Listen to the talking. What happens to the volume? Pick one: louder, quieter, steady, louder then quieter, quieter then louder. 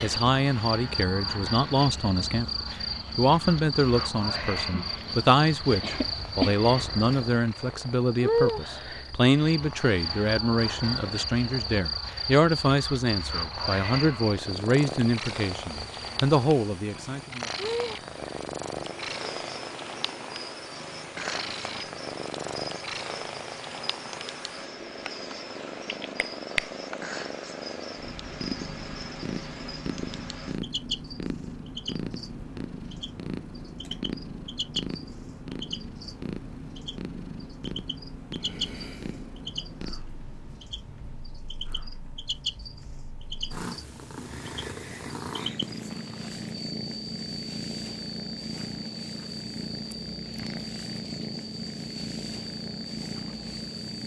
steady.